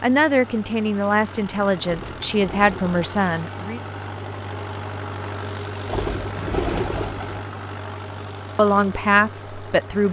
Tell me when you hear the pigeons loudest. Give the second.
7 s.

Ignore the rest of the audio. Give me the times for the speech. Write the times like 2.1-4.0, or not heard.
0.0-3.8, 8.6-10.0.